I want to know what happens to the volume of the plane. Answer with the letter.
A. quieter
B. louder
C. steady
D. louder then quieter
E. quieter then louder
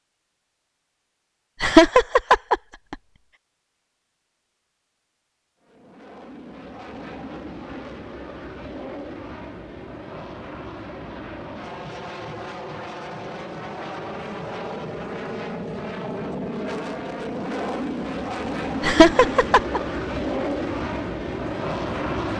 B.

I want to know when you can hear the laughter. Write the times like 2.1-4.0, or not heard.
1.6-3.0, 18.8-19.8.